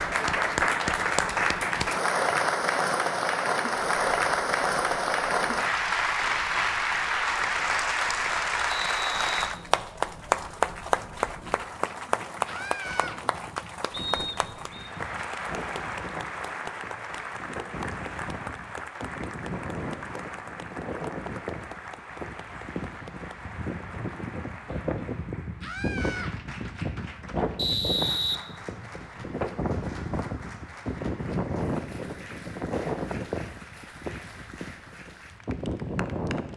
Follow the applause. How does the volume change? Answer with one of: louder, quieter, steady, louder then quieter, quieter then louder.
quieter.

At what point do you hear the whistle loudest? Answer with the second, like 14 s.
28 s.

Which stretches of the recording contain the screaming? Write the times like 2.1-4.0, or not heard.
12.4-13.2, 25.6-26.4.